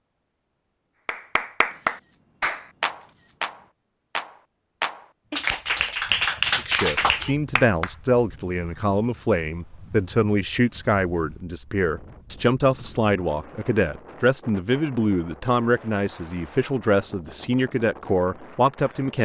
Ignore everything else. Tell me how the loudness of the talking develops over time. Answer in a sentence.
The volume of the talking stays about the same.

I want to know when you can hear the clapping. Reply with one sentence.
You can hear the clapping from 1.1 to 7.9 s.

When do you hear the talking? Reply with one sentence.
The talking can be heard from 6.5 to 19.1 s.